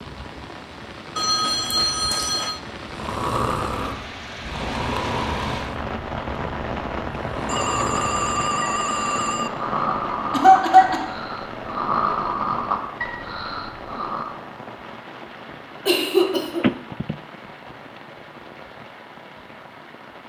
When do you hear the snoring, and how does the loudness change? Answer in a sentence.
You can hear the snoring from 2.9 to 14.3 s, getting quieter then louder.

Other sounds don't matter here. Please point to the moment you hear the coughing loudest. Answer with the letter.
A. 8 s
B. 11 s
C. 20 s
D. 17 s
B.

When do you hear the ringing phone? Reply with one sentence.
You can hear the ringing phone from 1.1 to 2.6 s, from 7.5 to 9.5 s and from 16.6 to 17.1 s.